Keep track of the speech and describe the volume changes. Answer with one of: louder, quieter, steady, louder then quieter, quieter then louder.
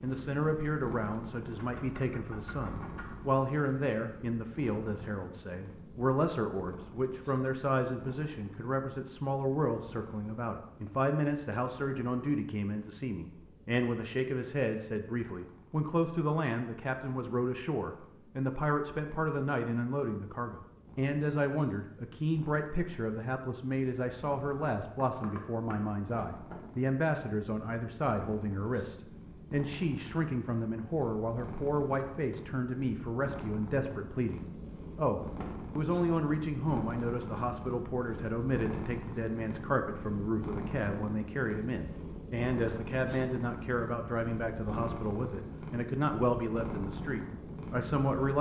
steady.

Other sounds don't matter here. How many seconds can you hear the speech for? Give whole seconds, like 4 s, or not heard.
48 s.